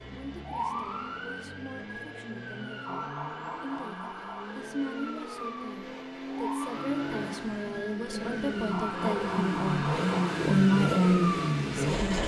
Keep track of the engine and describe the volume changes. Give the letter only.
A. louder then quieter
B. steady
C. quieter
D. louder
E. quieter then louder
D.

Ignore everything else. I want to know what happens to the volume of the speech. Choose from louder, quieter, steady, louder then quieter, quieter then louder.
louder.